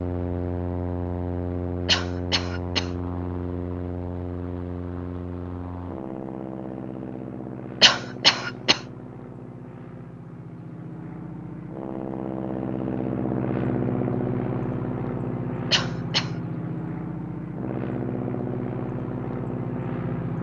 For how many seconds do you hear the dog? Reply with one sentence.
You can't hear the dog here.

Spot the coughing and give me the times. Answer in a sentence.
You can hear the coughing from 1.9 to 2.9 s, from 7.8 to 8.8 s and from 15.7 to 16.3 s.